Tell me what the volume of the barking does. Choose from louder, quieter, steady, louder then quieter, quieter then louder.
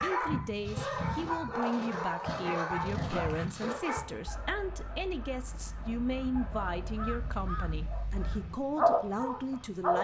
quieter then louder.